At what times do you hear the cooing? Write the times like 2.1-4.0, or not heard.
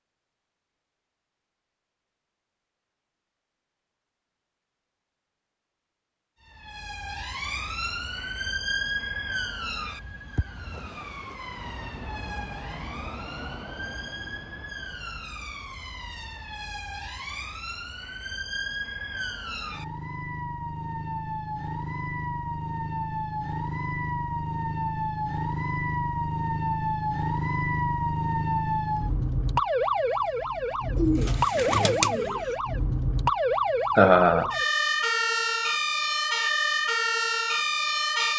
30.9-32.5.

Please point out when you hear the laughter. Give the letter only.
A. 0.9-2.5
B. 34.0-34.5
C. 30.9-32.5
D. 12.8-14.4
B.